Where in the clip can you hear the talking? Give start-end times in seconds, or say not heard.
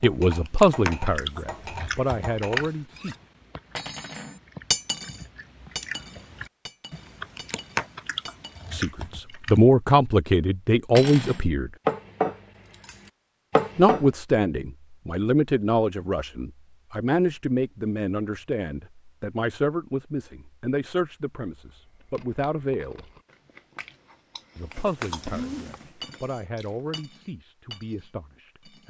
0.0-3.1, 8.7-11.7, 13.8-23.1, 24.6-28.8.